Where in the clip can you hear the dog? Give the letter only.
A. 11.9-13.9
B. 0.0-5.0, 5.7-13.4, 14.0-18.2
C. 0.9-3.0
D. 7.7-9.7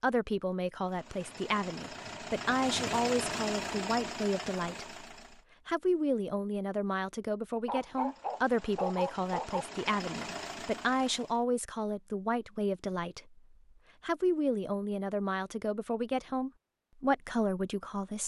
D.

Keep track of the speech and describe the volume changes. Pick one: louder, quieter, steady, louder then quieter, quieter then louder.
steady.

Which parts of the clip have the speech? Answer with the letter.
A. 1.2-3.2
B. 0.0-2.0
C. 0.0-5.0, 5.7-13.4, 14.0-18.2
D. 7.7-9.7
C.